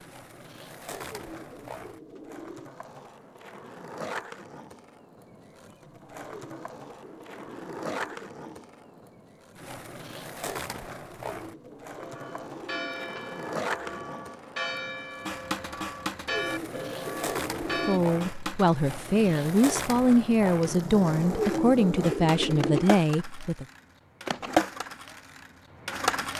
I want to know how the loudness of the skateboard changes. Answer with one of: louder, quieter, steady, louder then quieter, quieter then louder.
louder.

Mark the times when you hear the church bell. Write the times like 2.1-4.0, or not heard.
11.9-18.0.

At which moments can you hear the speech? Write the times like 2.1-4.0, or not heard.
17.9-23.6.